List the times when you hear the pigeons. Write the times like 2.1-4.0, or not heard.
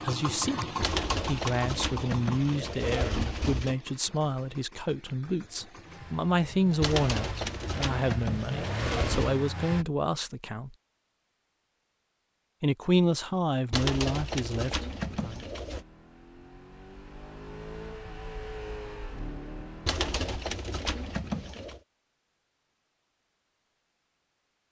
0.8-3.8, 6.8-9.4, 13.7-15.8, 19.9-21.8.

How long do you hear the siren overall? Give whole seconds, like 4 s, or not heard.
not heard.